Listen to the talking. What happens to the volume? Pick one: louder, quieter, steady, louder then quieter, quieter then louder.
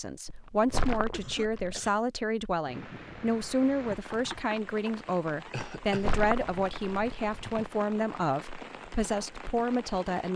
steady.